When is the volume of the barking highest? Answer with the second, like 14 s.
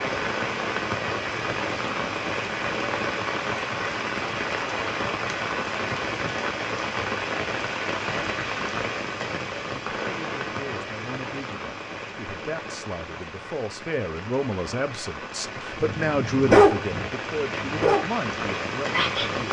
17 s.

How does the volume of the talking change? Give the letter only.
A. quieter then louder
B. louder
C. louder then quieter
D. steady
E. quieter
C.